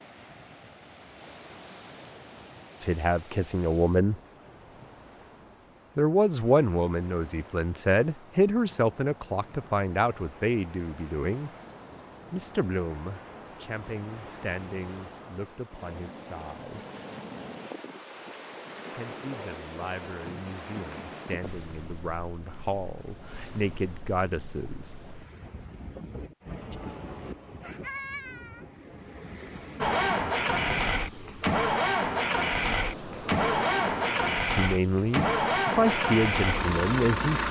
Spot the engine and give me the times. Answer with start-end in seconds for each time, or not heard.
29.8-37.4.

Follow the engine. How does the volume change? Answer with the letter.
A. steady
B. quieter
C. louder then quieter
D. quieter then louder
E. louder
A.